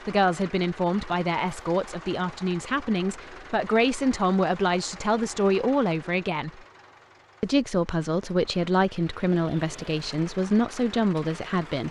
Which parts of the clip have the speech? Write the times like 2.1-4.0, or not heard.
0.1-6.6, 7.4-11.8.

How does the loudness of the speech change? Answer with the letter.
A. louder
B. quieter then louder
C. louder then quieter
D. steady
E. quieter
D.